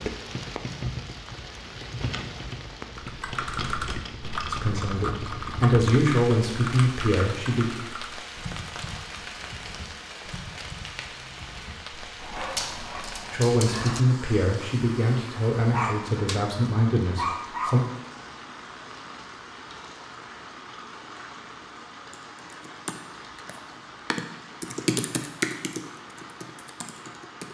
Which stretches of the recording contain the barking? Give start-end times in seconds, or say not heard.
12.2-16.4, 17.1-17.9.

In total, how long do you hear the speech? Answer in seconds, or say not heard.
8 s.